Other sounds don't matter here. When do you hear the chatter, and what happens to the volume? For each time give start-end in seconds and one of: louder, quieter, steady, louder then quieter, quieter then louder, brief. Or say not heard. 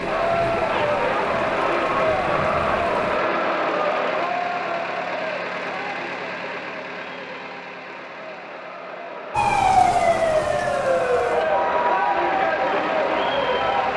0.0-13.9 quieter then louder.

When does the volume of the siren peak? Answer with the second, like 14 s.
10 s.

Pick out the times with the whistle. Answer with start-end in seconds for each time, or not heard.
not heard.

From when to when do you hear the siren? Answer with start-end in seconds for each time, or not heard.
0.0-3.2, 9.3-13.9.